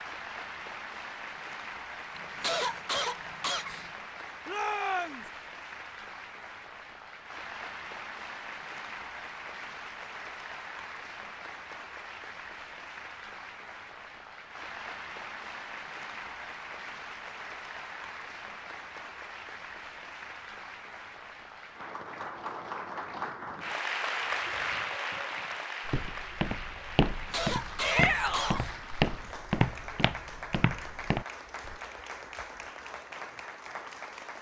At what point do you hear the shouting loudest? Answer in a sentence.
The loudest moment of the shouting is at 28 seconds.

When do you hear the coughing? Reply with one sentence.
You can hear the coughing from 2.1 to 3.9 s and from 27.1 to 28.8 s.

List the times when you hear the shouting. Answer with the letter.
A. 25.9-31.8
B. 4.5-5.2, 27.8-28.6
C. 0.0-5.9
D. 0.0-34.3
B.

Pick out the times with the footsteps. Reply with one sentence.
You can hear the footsteps from 25.9 to 31.8 s.